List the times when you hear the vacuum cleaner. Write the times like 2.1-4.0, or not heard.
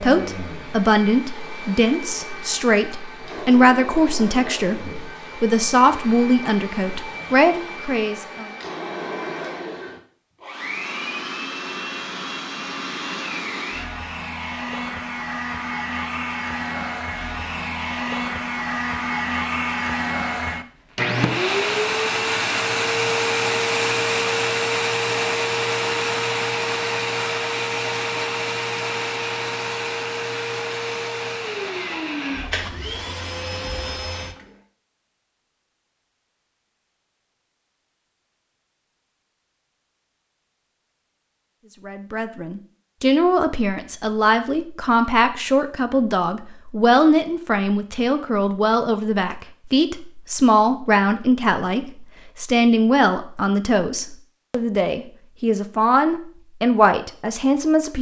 0.0-34.5.